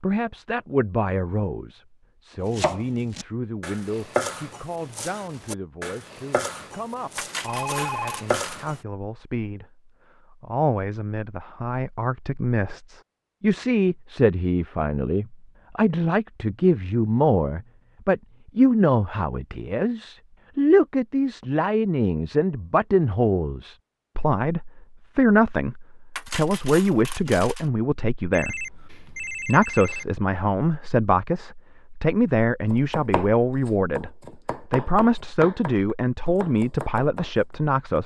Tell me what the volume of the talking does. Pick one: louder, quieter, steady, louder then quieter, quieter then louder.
louder.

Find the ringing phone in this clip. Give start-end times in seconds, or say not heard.
7.5-8.2, 28.3-30.1.